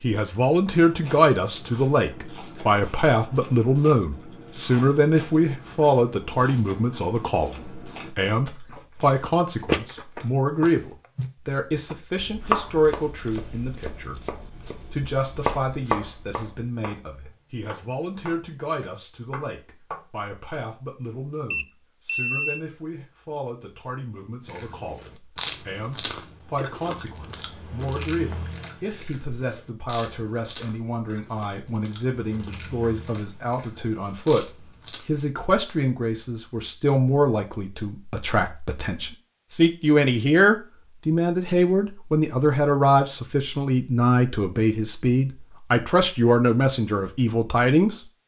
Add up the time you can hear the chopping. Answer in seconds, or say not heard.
8 s.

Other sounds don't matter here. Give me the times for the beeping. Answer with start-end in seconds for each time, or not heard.
21.5-22.6.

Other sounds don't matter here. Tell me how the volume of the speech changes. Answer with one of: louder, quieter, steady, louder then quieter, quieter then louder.
quieter then louder.